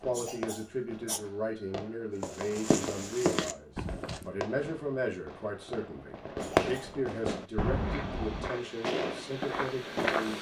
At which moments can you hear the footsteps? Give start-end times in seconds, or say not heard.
2.2-4.2, 7.4-10.3.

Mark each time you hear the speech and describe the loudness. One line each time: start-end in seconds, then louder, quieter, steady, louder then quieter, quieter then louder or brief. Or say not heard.
0.0-10.3 steady.